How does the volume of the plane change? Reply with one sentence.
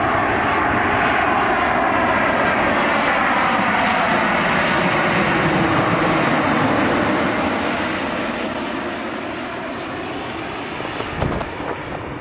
The volume of the plane goes down.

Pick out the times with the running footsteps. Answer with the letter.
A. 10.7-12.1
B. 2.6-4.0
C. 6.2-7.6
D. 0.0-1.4
A.